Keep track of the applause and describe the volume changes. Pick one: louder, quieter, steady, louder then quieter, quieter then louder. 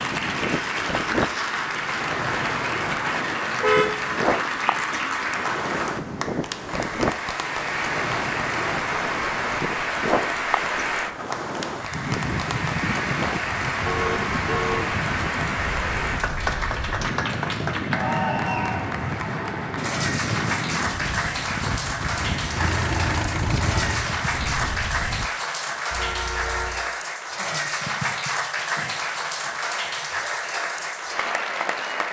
steady.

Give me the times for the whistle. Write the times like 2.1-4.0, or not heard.
not heard.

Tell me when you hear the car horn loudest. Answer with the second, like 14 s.
4 s.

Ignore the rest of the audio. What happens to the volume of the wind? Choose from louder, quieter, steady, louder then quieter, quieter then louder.
steady.